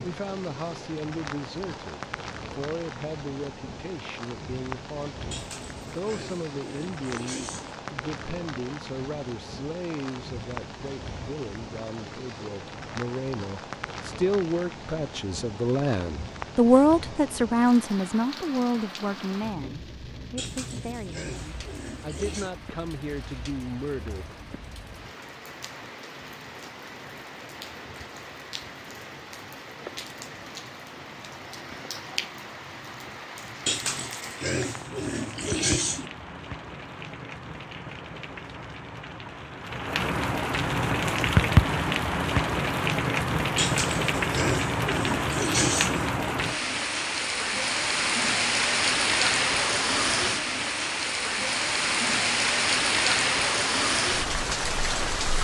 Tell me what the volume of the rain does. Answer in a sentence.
The volume of the rain goes up.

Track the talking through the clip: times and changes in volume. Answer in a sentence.
The talking can be heard from 0.0 to 24.6 s, getting louder then quieter.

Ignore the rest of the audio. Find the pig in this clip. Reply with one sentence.
You can hear the pig from 5.3 to 7.8 s, from 20.4 to 22.5 s, from 33.6 to 36.1 s and from 43.5 to 46.2 s.